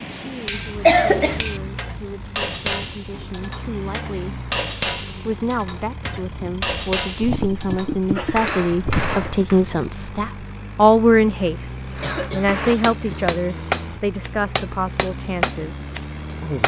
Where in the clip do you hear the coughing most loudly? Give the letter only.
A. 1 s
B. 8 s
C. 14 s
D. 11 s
A.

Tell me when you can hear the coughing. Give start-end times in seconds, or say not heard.
0.8-1.4, 7.2-9.3, 11.9-13.3.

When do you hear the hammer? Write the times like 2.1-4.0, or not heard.
0.0-9.6, 11.9-16.6.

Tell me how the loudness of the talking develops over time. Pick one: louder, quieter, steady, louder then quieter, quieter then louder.
louder then quieter.